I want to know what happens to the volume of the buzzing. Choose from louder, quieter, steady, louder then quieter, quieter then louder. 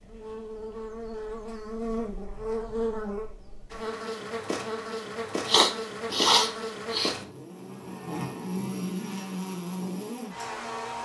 steady.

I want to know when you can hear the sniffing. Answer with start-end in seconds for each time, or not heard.
5.5-7.2.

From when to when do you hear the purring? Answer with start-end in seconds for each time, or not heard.
not heard.